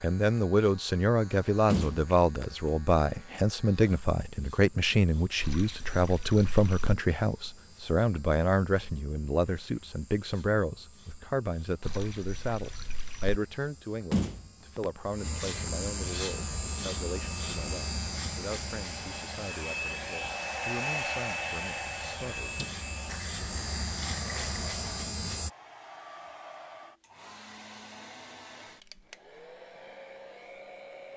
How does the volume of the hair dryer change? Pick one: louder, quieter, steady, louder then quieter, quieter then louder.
louder then quieter.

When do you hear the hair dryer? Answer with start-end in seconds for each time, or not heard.
16.3-31.1.